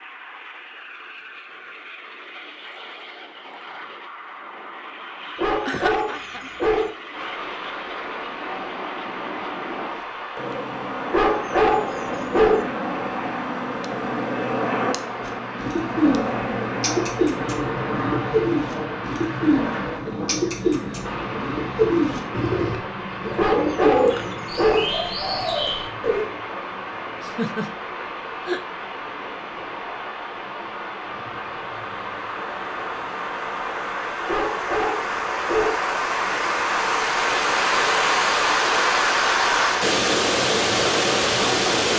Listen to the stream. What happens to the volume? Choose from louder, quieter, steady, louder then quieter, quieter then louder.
louder.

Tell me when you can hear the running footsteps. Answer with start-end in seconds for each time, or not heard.
not heard.